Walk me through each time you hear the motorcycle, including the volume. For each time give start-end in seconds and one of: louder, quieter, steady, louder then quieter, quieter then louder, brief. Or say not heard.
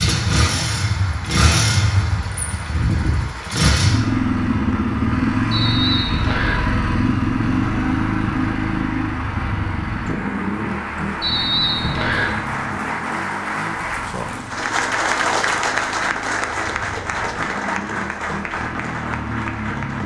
0.0-20.0 quieter.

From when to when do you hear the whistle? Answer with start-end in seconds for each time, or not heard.
5.5-6.7, 11.2-12.3.